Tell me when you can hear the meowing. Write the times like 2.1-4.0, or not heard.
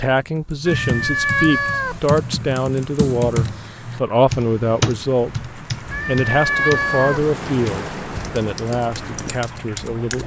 0.7-2.1, 5.9-7.3.